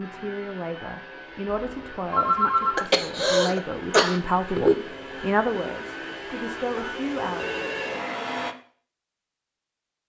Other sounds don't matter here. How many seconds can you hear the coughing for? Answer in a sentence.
The coughing can be heard for 2 seconds in total.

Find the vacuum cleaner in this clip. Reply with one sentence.
The vacuum cleaner can be heard from 0.0 to 8.6 s.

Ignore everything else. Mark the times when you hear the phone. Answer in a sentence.
You can hear the phone from 1.7 to 2.9 s and from 7.3 to 8.1 s.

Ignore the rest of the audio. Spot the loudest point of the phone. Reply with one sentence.
The loudest moment of the phone is at 2 seconds.